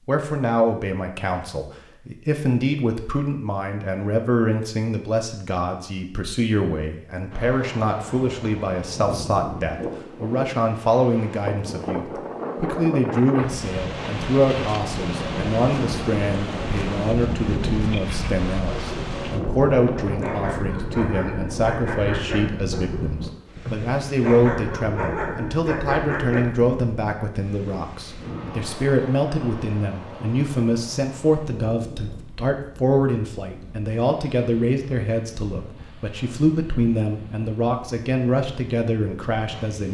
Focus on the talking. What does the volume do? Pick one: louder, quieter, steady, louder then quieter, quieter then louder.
steady.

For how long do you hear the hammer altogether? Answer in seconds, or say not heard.
not heard.